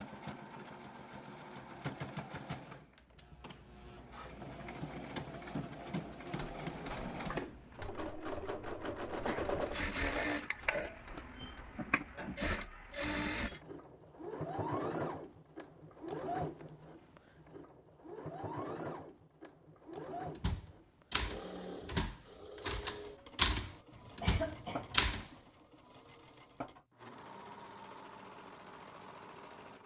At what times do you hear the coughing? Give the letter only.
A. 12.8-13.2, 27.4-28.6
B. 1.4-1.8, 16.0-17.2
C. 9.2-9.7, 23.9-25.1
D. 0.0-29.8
C.